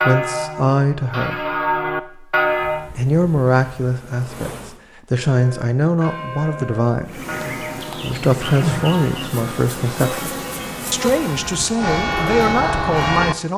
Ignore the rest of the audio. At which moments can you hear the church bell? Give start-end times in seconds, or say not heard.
0.0-2.9, 5.3-13.3.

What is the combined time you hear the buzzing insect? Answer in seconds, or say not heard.
7 s.